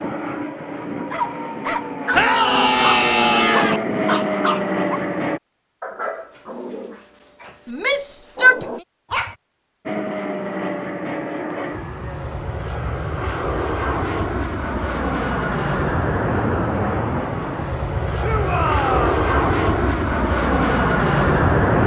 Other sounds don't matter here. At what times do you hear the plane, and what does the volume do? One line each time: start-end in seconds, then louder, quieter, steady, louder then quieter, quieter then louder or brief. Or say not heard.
0.0-5.4 louder
9.8-21.8 louder.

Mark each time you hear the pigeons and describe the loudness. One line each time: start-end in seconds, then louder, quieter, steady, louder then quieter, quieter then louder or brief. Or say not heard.
not heard.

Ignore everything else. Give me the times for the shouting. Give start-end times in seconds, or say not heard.
2.1-3.8, 7.7-8.7, 18.2-19.2.